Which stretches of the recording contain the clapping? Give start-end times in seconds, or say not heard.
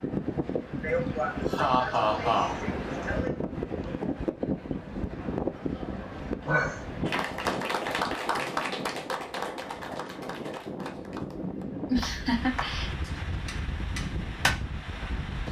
7.0-14.6.